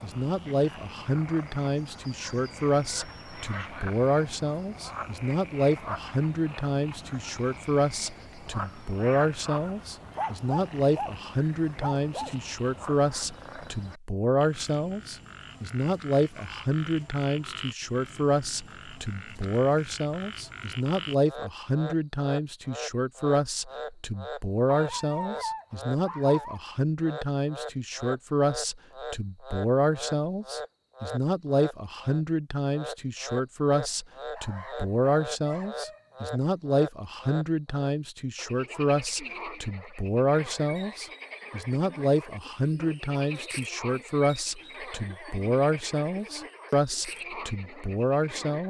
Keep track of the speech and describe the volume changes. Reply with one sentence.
The volume of the speech stays about the same.